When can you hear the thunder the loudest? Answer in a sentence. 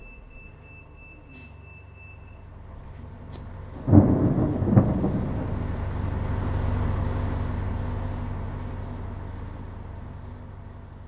The volume of the thunder peaks at 4 seconds.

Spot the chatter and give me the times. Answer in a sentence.
The chatter can't be heard in this clip.